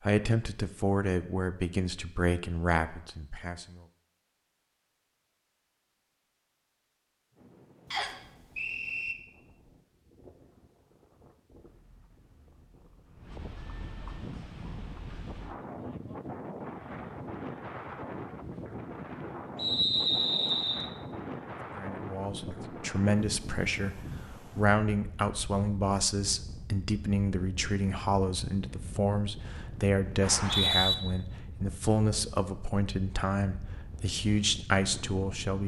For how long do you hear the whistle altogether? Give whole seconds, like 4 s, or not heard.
3 s.